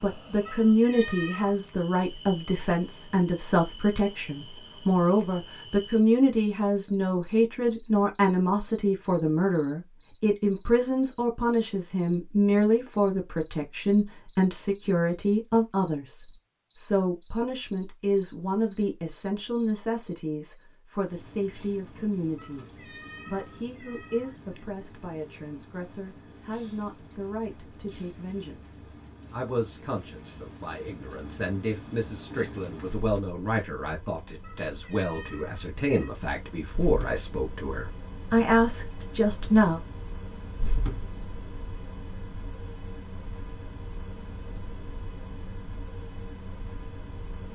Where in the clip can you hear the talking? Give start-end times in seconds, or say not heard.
0.0-22.6, 23.2-39.8.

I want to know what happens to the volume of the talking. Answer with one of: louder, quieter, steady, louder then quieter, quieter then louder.
quieter then louder.